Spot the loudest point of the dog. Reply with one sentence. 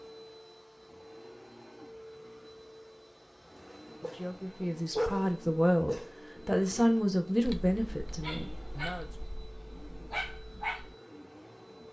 The loudest moment of the dog is at 5 seconds.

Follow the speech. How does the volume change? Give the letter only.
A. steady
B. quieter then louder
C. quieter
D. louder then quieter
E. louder
D.